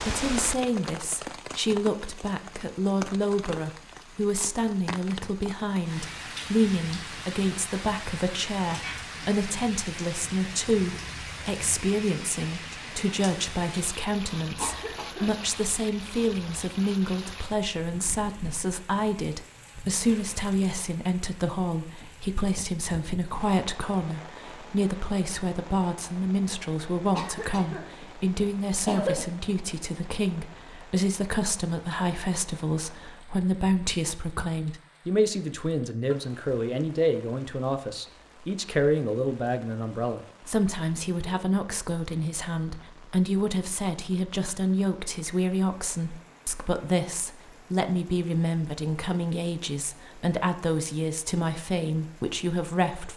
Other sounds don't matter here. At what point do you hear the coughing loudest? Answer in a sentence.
The loudest moment of the coughing is at 29 seconds.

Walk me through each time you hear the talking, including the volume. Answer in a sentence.
You can hear the talking from 0.0 to 53.1 s, at a steady volume.